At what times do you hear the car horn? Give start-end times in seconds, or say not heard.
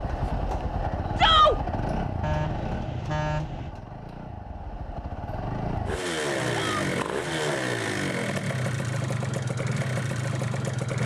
2.2-3.8, 6.3-7.7.